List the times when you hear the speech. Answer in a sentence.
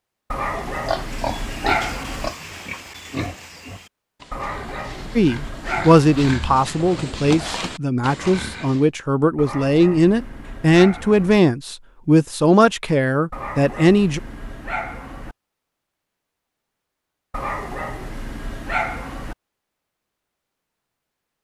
You can hear the speech from 5.2 to 14.2 s.